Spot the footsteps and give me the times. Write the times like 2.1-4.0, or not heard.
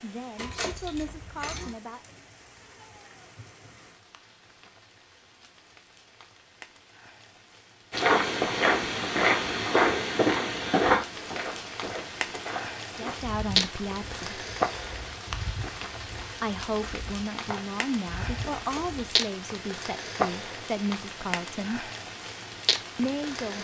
7.9-19.1.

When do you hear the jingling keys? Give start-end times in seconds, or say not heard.
0.3-1.8, 18.5-19.0.